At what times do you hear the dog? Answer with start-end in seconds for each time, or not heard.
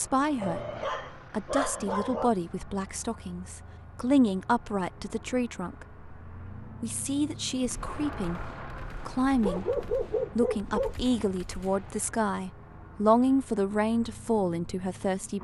0.4-2.3, 9.4-10.9.